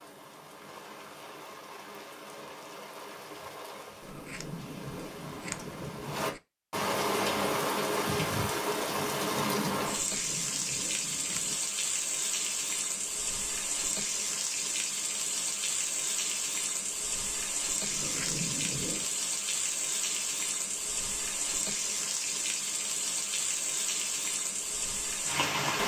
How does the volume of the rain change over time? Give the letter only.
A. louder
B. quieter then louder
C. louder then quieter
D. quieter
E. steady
A.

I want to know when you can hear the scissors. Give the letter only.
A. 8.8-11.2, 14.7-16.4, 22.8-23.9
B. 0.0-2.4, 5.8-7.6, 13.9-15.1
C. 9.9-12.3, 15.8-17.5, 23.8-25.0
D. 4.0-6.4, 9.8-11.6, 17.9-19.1
D.